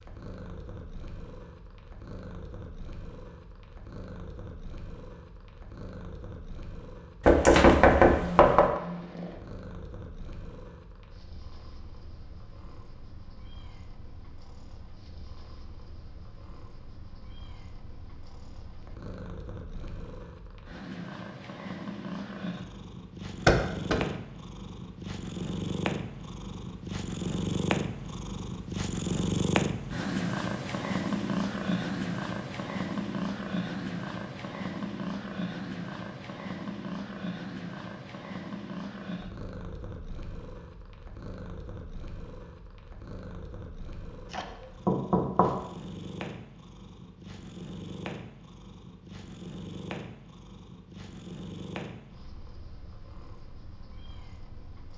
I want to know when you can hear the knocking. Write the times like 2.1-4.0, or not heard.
7.2-8.8, 23.4-24.1, 44.3-45.6.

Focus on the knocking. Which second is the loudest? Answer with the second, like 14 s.
8 s.